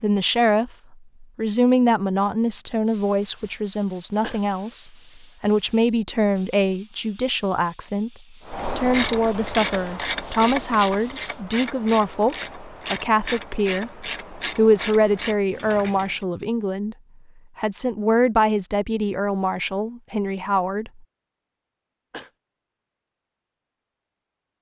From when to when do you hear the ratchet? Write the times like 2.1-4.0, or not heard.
8.4-16.2.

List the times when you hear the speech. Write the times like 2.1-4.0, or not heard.
0.0-8.1, 8.8-16.9, 17.6-20.9.